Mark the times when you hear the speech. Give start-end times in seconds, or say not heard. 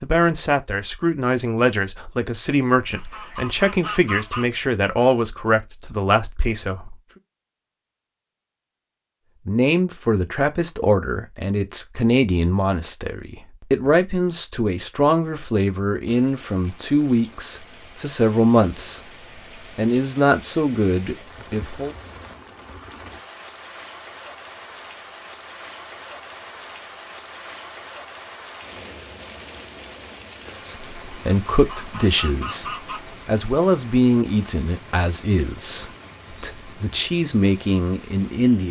0.0-7.0, 9.4-21.9, 30.6-38.6.